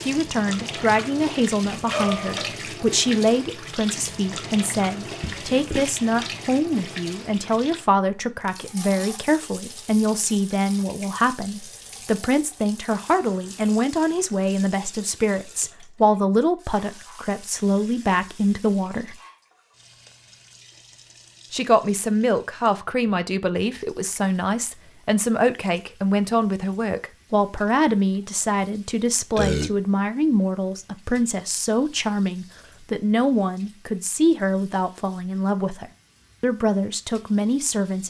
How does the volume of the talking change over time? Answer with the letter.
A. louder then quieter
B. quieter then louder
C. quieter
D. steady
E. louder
D.